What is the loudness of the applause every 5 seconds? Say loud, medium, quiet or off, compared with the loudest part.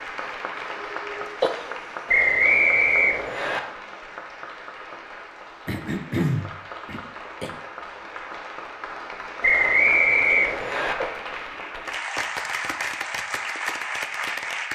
medium, medium, loud.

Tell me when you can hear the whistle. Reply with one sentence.
The whistle can be heard from 2.0 to 3.6 s and from 9.4 to 10.9 s.